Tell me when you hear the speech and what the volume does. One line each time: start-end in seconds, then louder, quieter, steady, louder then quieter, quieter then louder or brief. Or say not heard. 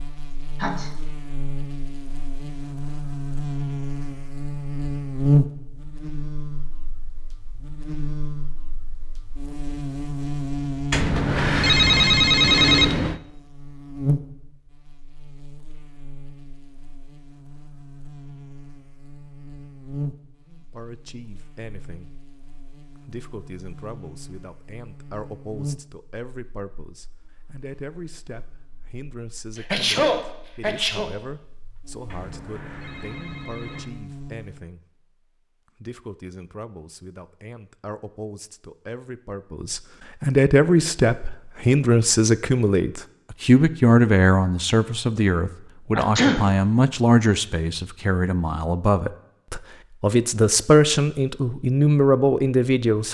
20.4-22.2 brief
23.1-35.0 steady
35.8-53.0 louder.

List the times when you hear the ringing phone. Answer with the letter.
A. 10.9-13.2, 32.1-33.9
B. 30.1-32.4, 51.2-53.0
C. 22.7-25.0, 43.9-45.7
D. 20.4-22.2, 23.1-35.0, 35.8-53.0
A.